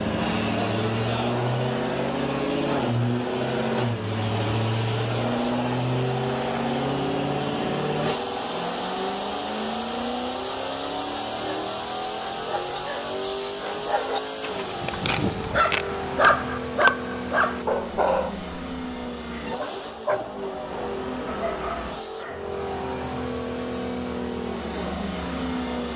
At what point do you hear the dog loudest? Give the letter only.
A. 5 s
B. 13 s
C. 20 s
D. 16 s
D.